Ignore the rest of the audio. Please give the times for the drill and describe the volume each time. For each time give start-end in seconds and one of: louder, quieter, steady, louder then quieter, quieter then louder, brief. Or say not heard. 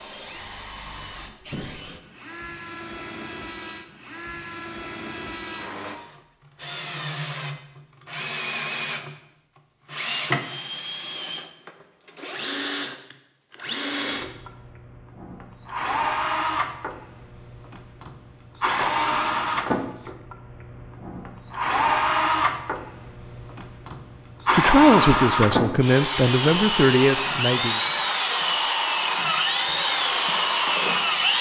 0.0-31.3 louder.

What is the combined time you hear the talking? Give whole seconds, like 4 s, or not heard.
3 s.